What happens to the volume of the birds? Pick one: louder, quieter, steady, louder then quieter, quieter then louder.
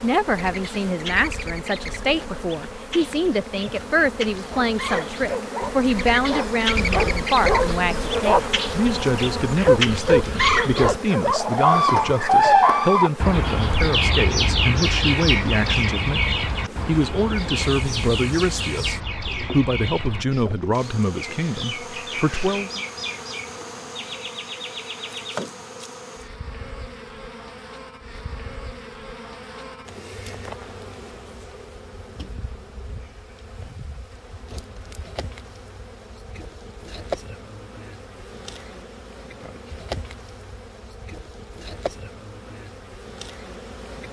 louder then quieter.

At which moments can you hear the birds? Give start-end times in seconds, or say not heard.
0.0-25.4.